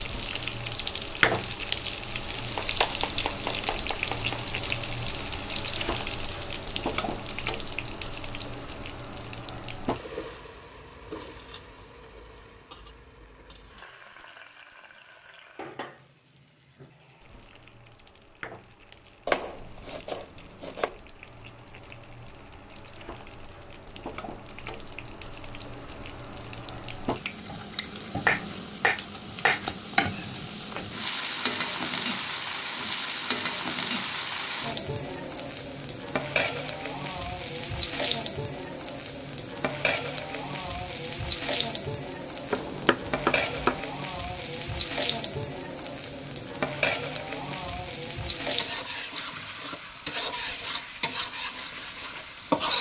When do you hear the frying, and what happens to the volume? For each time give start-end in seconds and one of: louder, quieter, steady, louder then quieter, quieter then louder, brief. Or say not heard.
0.0-52.7 quieter then louder.